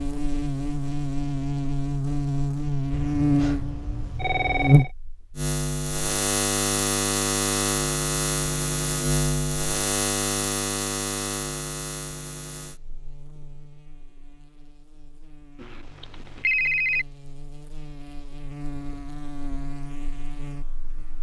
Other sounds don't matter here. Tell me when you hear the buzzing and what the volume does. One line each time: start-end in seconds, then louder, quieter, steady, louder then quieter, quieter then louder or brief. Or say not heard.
0.0-21.1 quieter then louder.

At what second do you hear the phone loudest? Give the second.
17 s.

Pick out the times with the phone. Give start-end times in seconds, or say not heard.
2.9-4.9, 15.6-17.1.